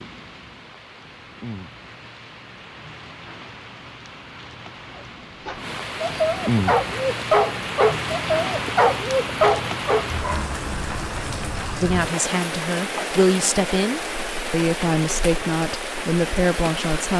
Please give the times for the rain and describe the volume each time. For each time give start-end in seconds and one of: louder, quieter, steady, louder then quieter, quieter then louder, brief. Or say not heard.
0.0-17.1 louder.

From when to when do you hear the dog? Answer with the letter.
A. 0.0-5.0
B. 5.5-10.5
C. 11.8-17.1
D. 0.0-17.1
B.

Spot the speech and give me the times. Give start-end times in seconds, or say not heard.
11.8-17.1.